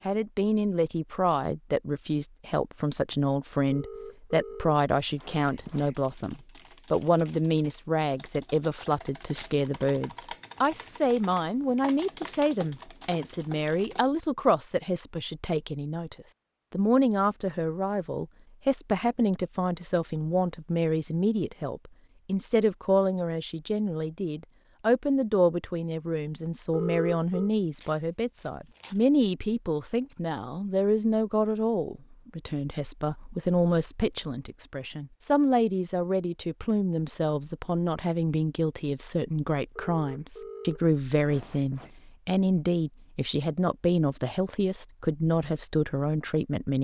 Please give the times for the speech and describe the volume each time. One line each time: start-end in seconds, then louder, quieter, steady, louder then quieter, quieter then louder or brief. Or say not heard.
0.1-46.7 steady.